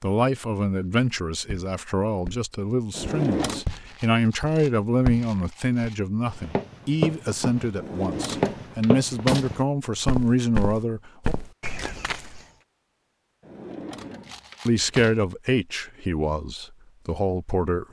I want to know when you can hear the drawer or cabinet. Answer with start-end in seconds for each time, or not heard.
2.9-3.6, 7.8-9.5, 13.4-15.2.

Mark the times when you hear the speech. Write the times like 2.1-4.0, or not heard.
0.0-11.3, 14.7-17.8.